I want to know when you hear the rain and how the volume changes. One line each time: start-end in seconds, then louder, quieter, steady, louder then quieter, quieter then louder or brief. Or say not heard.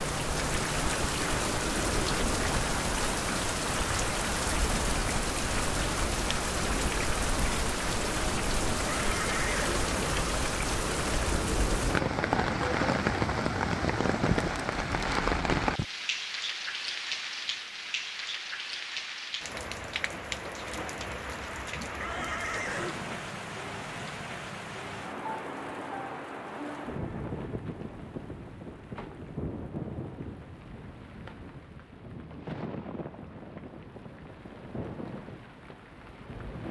0.0-36.6 quieter.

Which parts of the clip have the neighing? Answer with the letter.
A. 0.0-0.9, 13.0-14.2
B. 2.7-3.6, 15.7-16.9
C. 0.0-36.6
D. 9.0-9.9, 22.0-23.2
D.